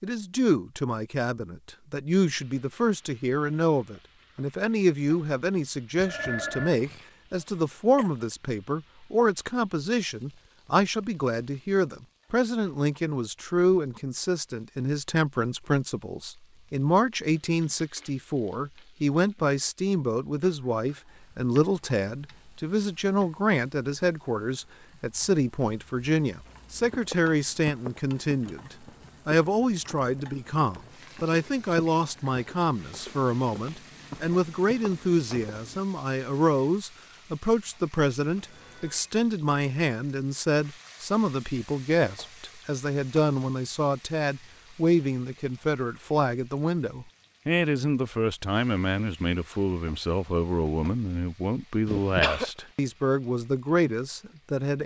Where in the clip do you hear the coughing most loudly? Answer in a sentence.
The loudest moment of the coughing is at 52 seconds.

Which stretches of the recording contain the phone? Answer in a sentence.
The phone can be heard from 6.0 to 6.8 s and from 38.4 to 39.1 s.